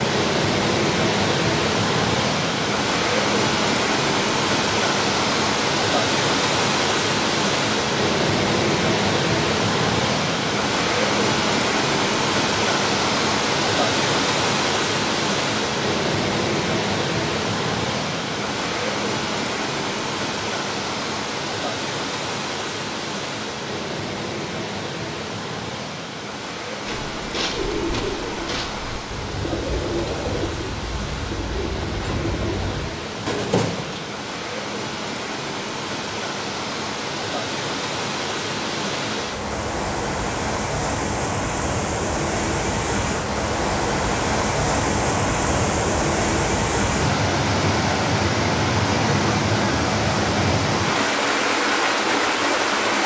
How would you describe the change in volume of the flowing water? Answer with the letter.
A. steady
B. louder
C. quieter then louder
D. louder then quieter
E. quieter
C.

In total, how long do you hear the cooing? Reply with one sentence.
The cooing can be heard for 7 seconds in total.